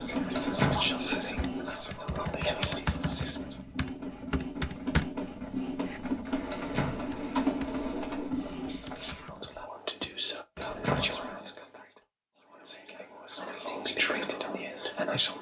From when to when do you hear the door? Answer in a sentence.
The door can be heard from 0.3 to 0.9 s, from 6.5 to 7.1 s and from 10.6 to 11.2 s.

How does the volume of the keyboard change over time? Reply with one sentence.
The loudness of the keyboard goes down.